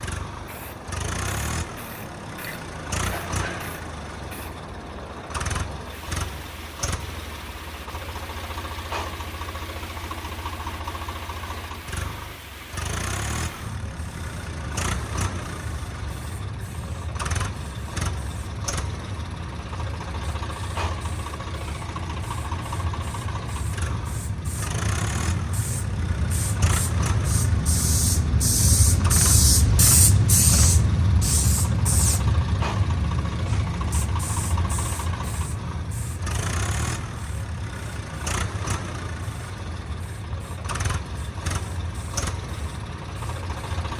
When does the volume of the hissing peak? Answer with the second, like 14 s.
30 s.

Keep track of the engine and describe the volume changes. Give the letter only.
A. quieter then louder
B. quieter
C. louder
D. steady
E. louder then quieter
D.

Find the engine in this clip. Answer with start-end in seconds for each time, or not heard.
0.0-43.9.